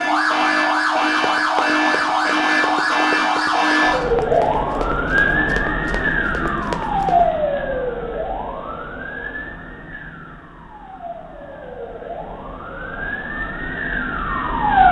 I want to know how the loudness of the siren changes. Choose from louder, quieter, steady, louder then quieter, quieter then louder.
quieter then louder.